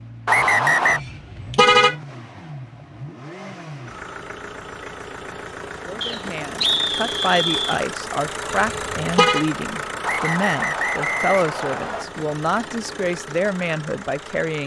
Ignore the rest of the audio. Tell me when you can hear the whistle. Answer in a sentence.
You can hear the whistle from 0.2 to 1.0 s, from 6.0 to 7.8 s and from 10.0 to 12.1 s.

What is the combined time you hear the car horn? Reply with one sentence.
You can hear the car horn for 2 seconds altogether.